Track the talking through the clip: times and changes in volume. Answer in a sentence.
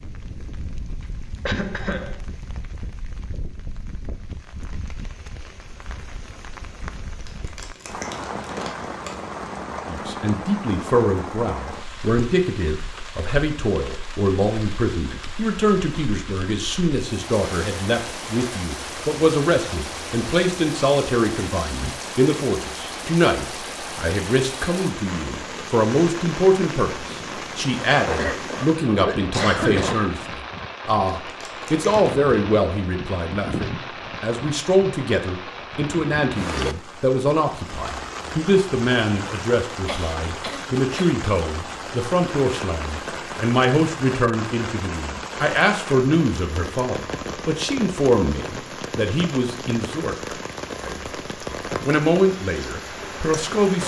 You can hear the talking from 9.8 to 51.2 s, at a steady volume; and briefly from 51.8 to 53.8 s.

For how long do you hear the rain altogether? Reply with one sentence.
You can hear the rain for 54 seconds altogether.